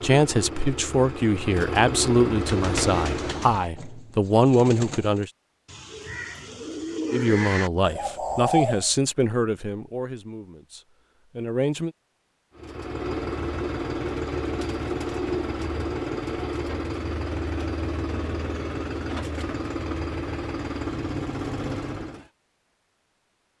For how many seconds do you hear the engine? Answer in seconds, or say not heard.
13 s.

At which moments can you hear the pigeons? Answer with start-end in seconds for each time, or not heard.
2.4-8.9.